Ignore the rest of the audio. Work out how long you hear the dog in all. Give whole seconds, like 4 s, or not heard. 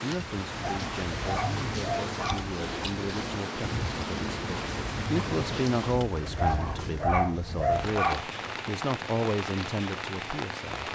4 s.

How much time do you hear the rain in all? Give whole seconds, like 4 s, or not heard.
11 s.